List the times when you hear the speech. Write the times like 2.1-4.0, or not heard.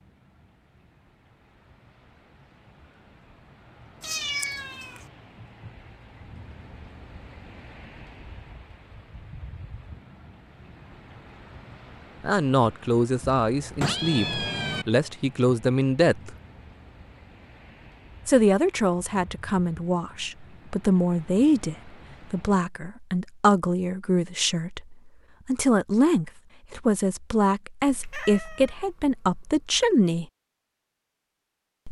12.2-16.4, 18.2-30.2.